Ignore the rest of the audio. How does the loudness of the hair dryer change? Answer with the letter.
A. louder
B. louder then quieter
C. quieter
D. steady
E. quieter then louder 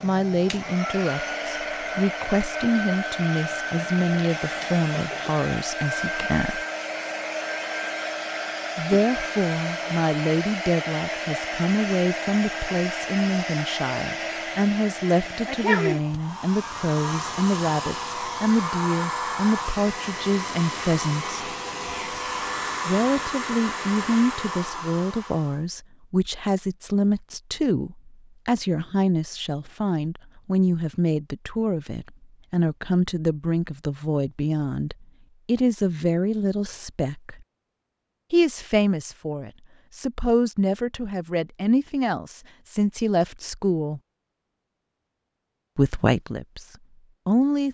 D.